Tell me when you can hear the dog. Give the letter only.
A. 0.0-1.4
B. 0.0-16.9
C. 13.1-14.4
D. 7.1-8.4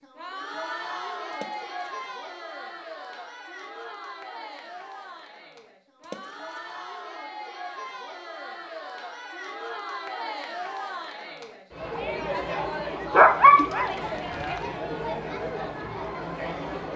C.